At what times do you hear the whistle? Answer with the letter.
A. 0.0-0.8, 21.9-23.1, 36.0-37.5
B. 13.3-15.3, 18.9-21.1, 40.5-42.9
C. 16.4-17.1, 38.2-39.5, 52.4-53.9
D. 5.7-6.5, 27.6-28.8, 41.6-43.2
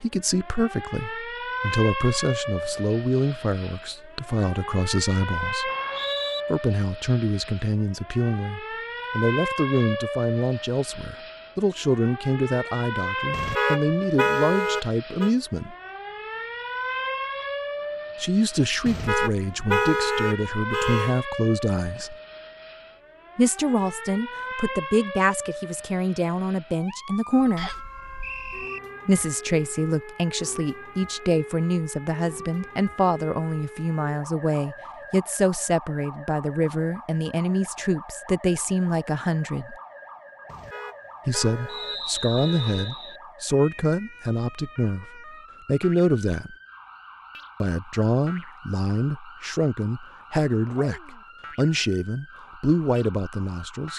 D.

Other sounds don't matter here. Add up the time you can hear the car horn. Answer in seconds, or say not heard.
7 s.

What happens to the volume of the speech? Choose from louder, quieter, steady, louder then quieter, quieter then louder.
steady.